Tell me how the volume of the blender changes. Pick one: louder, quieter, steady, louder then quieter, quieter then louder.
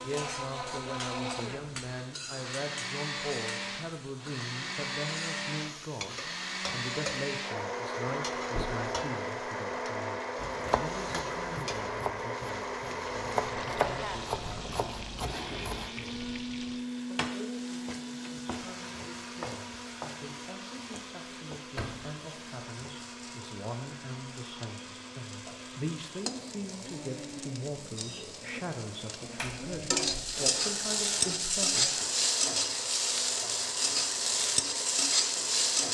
quieter.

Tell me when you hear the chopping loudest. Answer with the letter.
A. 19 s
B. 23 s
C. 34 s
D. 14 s
D.